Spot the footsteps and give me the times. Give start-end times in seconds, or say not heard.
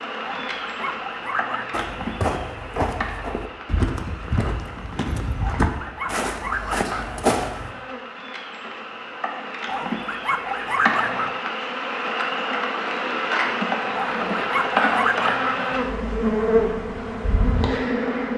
1.7-7.7.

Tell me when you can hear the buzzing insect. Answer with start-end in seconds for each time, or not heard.
0.0-18.3.